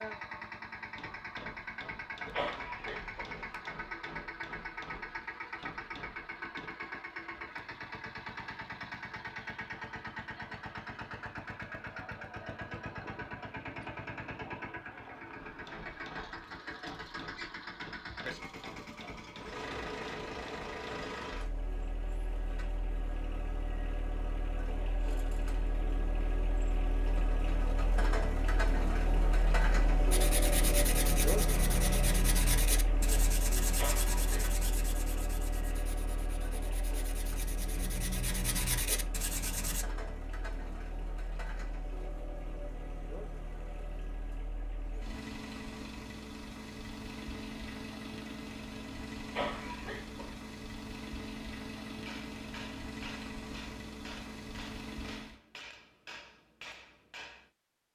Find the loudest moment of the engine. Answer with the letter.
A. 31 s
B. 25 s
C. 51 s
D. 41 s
A.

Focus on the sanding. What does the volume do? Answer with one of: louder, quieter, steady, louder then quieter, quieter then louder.
quieter then louder.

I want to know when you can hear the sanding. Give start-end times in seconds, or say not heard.
30.1-39.9.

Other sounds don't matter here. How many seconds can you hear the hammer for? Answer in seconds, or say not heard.
17 s.